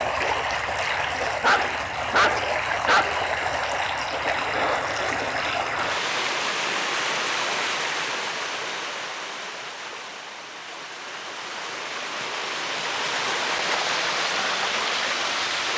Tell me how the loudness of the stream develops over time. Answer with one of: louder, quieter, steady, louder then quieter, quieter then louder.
quieter then louder.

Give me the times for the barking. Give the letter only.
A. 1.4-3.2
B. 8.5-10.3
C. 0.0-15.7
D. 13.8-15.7
A.